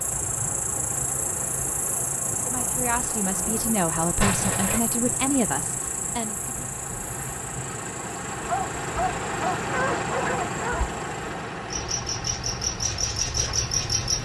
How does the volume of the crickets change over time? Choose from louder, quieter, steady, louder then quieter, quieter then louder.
quieter then louder.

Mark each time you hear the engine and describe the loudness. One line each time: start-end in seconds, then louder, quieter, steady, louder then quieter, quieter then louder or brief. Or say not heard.
0.0-14.2 louder then quieter.